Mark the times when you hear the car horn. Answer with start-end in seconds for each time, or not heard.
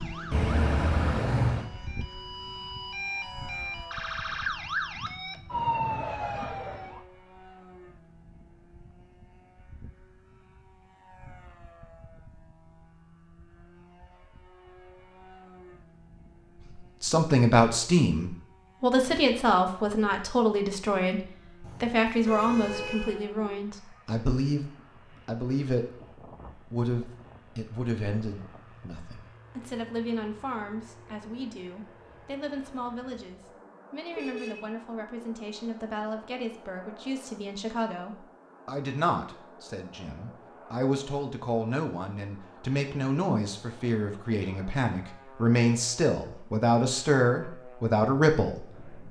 0.3-1.7, 21.6-23.2, 34.1-34.7.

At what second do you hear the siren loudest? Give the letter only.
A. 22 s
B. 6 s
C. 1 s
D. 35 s
B.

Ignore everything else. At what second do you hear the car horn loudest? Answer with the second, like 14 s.
1 s.